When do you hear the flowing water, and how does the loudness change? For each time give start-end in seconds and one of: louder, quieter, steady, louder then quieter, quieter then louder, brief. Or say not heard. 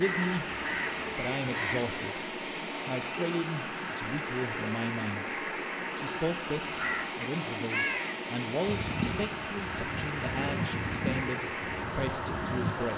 0.0-12.9 steady.